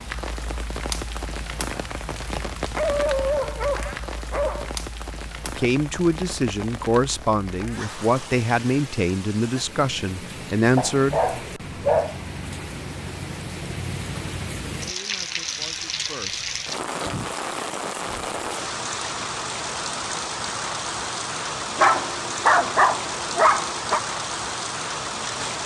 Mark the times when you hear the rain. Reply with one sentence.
The rain can be heard from 0.0 to 25.6 s.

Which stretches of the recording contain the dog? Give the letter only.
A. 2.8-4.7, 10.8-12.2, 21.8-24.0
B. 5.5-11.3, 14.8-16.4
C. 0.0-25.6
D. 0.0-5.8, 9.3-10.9
A.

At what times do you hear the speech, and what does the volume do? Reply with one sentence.
You can hear the speech from 5.5 to 11.3 s, at a steady volume; and briefly from 14.8 to 16.4 s.